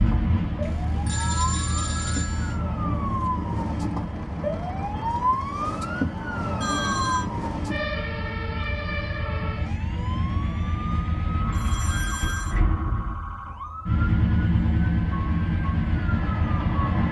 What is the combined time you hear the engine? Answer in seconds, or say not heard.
17 s.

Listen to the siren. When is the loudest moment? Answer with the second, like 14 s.
6 s.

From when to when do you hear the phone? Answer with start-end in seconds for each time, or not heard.
0.6-2.6, 6.6-7.2, 11.5-12.6.